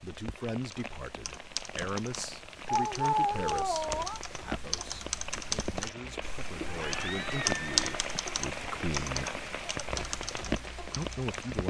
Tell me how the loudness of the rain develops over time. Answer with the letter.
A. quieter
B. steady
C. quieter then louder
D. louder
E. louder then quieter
D.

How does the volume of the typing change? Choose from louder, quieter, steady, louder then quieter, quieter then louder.
louder then quieter.